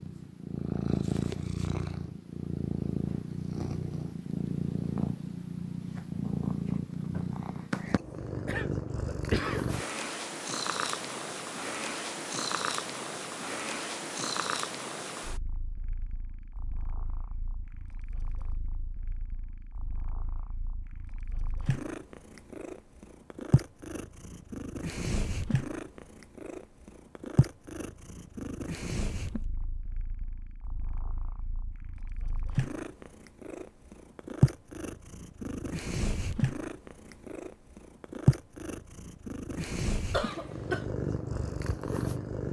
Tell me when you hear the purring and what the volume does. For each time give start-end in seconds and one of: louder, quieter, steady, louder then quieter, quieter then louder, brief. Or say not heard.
0.0-42.4 quieter then louder.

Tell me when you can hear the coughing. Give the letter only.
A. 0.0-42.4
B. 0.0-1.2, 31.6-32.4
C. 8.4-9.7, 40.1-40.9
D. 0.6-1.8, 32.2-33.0
C.